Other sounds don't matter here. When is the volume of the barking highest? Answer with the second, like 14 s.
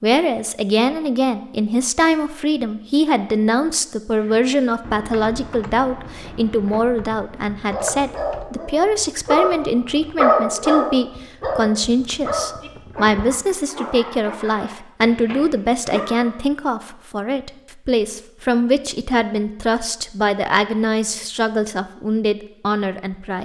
10 s.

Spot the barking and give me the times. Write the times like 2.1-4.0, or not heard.
7.7-16.4.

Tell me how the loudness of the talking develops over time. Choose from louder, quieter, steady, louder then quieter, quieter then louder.
steady.